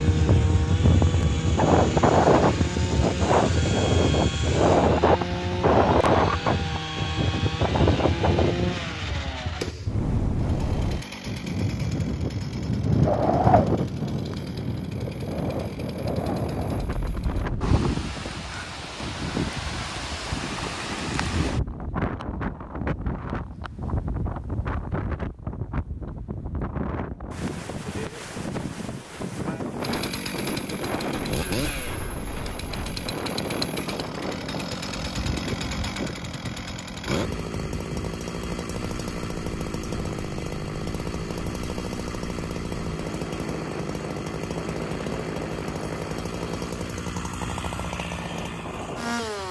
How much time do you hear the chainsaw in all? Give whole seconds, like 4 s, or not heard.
37 s.